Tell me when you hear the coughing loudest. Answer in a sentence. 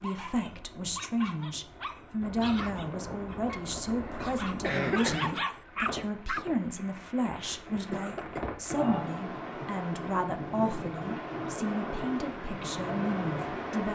The loudest moment of the coughing is at 5 seconds.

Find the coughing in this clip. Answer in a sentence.
You can hear the coughing from 3.5 to 5.3 s and from 7.8 to 8.4 s.